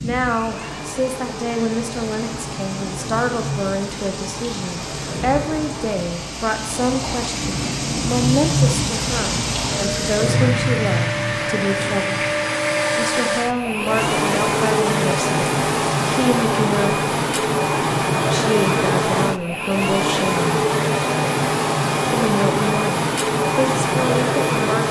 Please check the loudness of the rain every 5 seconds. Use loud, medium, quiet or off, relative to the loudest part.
medium, loud, loud, off, off.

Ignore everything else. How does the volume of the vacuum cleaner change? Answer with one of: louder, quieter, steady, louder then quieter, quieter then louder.
louder.